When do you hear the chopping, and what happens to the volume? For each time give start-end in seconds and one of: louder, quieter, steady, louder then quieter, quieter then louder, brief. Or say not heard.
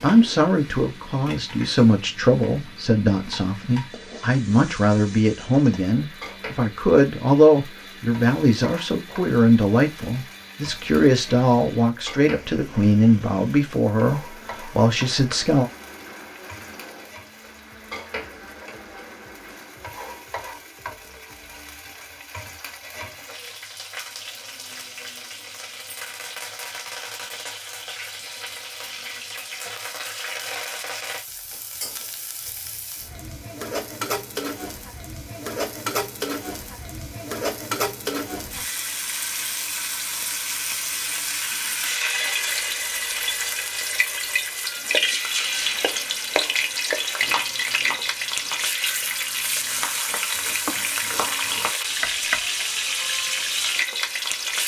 44.9-52.5 quieter then louder.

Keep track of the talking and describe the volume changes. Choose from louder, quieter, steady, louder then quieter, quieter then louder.
steady.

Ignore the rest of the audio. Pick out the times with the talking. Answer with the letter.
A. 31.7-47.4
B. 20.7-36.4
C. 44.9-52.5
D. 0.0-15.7
D.